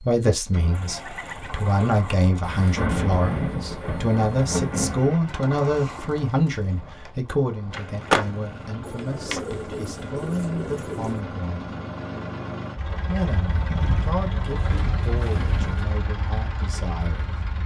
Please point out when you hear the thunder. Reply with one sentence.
You can hear the thunder from 2.4 to 5.2 s.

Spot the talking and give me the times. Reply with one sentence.
The talking can be heard from 0.0 to 11.7 s and from 13.1 to 17.4 s.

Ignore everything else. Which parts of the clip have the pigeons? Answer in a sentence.
You can hear the pigeons from 0.7 to 2.3 s, from 5.2 to 6.7 s, from 8.8 to 11.2 s and from 13.4 to 15.8 s.